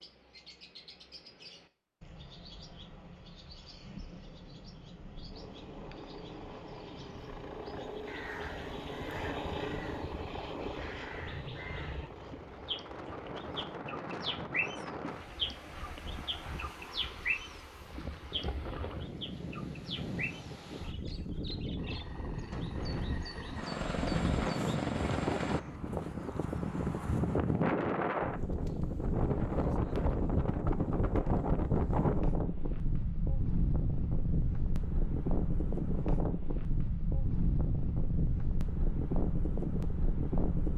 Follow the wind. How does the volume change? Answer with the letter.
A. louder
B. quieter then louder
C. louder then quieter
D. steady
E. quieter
A.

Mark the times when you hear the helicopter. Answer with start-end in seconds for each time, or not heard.
5.3-13.8, 21.8-25.6.